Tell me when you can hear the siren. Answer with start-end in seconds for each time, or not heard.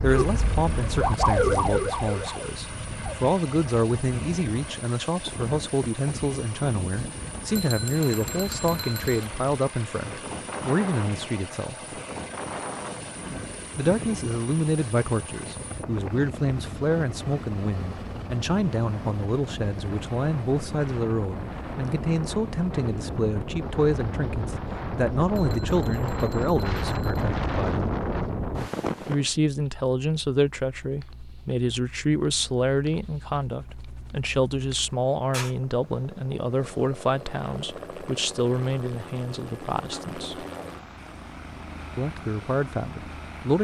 0.0-3.1.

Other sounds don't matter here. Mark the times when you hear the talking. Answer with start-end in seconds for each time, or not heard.
0.0-11.8, 13.8-27.8, 29.1-40.5, 42.0-43.5.